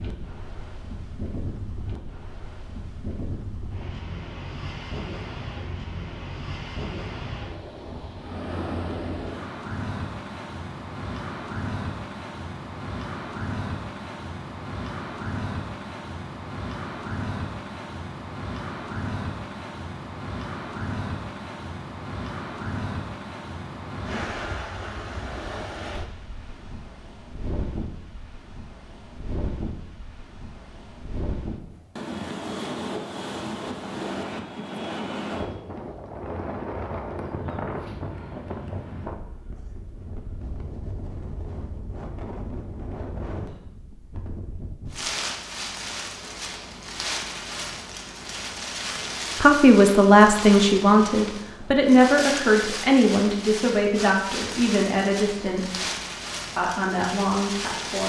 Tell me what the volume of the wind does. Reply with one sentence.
The loudness of the wind stays about the same.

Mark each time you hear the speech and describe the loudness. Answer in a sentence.
The speech can be heard from 49.4 to 55.9 s, getting quieter; and briefly from 56.5 to 58.0 s.